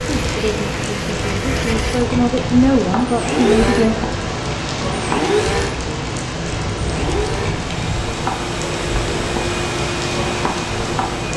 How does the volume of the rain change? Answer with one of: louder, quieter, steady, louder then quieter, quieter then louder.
steady.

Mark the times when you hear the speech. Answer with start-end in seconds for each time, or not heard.
0.0-4.0.